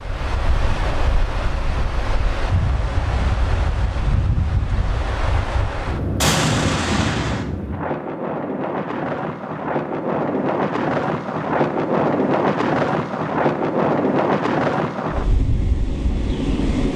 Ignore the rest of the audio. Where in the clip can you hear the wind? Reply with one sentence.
The wind can be heard from 0.0 to 16.9 s.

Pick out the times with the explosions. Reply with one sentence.
You can hear the explosions from 6.2 to 7.5 s.